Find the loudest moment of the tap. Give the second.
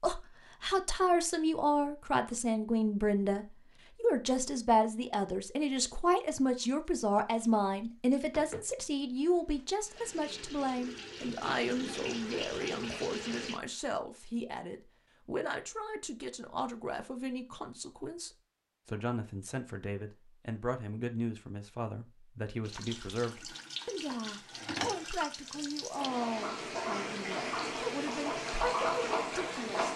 29 s.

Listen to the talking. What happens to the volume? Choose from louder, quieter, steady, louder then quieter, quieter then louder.
quieter.